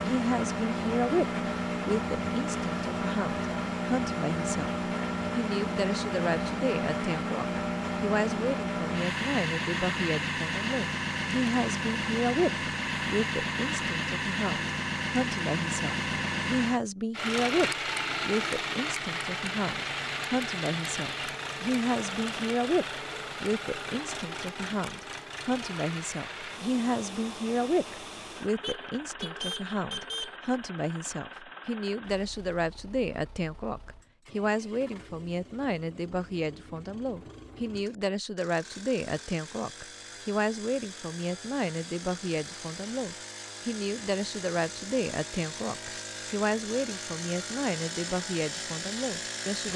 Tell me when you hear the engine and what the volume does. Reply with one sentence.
You can hear the engine from 0.0 to 49.7 s, getting quieter then louder.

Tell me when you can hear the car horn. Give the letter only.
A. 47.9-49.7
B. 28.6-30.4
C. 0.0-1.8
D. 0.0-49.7
B.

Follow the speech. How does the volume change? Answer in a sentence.
The loudness of the speech stays about the same.